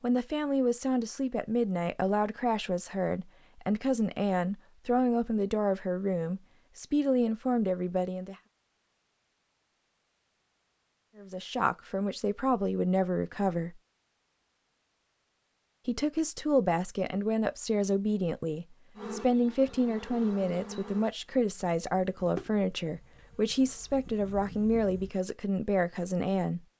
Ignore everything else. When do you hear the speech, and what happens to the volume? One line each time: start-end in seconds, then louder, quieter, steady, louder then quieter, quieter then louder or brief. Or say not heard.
0.0-8.3 steady
11.2-13.8 brief
15.8-26.6 steady.